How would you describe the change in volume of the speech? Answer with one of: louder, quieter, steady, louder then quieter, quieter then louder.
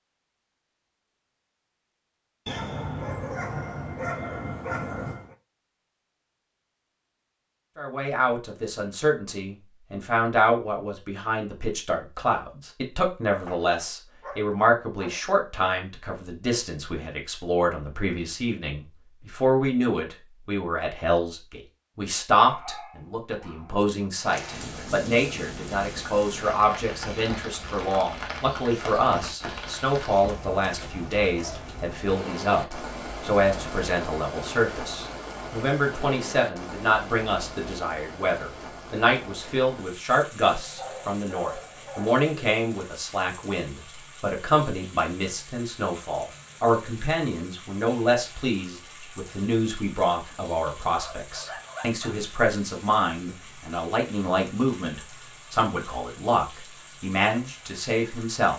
steady.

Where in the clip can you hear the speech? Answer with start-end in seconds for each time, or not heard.
7.8-58.5.